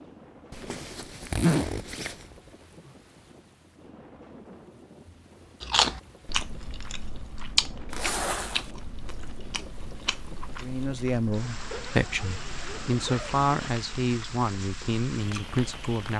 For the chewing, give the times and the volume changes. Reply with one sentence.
The chewing can be heard from 5.6 to 15.9 s, getting quieter.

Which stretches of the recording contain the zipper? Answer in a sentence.
The zipper can be heard from 0.5 to 2.2 s, from 7.9 to 8.7 s and from 11.7 to 13.7 s.